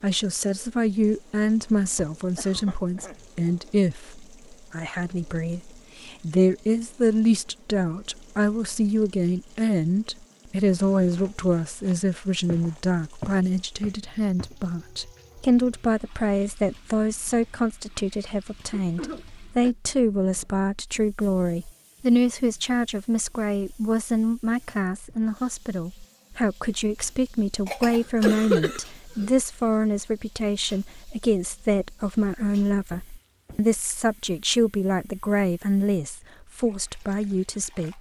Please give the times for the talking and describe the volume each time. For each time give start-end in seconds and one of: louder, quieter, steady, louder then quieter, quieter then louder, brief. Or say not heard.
0.0-37.9 steady.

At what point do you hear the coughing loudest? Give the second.
28 s.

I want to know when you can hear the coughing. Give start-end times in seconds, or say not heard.
2.4-3.5, 18.7-19.8, 27.6-29.3.